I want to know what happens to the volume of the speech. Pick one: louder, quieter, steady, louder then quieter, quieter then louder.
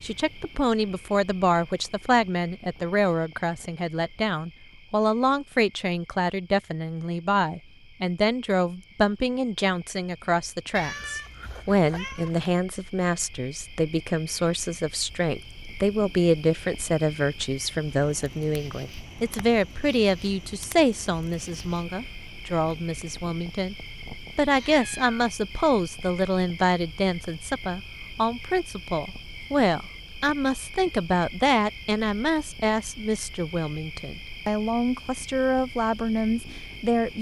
steady.